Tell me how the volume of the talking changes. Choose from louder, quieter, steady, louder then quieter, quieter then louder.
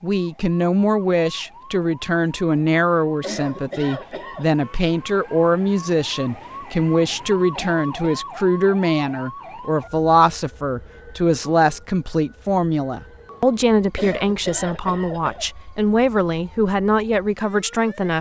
steady.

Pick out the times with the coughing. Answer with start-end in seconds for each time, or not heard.
3.2-4.5, 7.5-8.2, 13.9-15.5.